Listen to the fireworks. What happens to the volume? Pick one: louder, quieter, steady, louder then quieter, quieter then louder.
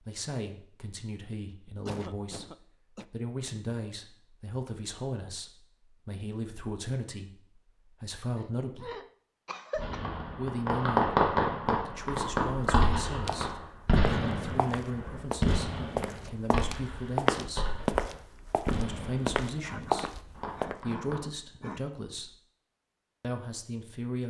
quieter.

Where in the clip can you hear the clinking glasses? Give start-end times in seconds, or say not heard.
not heard.